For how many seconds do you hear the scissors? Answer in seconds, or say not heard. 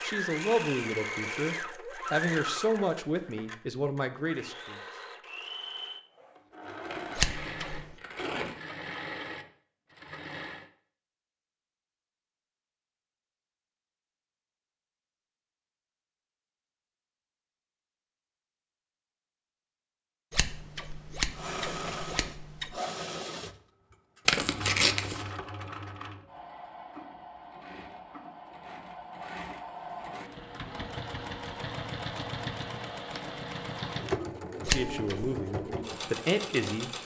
4 s.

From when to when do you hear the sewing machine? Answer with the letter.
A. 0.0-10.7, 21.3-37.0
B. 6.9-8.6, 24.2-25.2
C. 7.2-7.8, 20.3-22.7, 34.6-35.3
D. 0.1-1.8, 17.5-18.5
A.